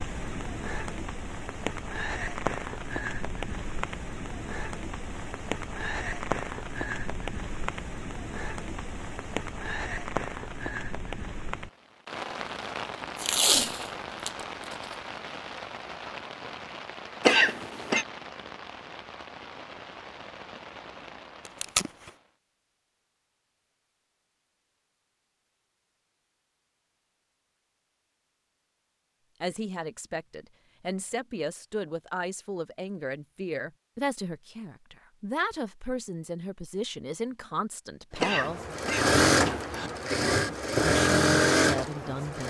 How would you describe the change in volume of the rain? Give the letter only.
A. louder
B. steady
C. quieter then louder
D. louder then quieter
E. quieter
E.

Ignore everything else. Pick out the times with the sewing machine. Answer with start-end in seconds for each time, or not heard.
38.1-42.4.